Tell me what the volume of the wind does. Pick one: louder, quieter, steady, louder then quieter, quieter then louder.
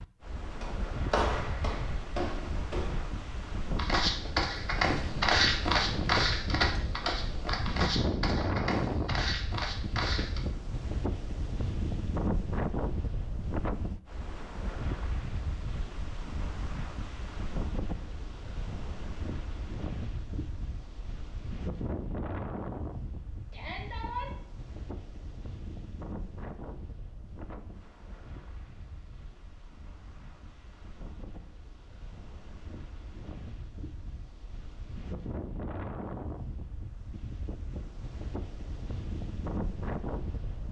quieter then louder.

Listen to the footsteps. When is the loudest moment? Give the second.
5 s.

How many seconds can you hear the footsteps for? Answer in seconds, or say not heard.
10 s.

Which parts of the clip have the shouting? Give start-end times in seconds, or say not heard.
23.5-24.4.